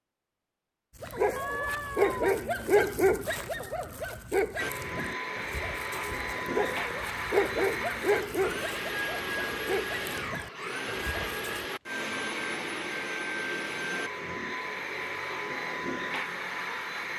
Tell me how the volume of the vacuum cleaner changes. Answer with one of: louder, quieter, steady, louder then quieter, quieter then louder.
steady.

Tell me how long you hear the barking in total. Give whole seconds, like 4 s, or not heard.
11 s.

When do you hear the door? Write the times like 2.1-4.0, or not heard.
not heard.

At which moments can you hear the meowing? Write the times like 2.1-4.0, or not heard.
1.4-2.4.